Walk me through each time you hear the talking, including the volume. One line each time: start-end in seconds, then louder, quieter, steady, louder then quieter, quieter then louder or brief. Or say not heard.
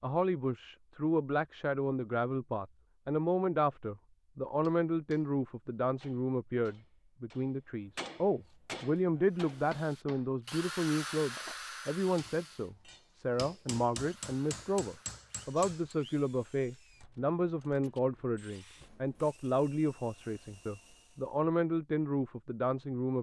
0.0-23.1 steady.